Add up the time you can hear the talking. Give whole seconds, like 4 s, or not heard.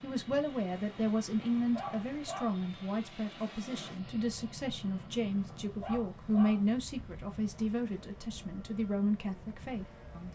10 s.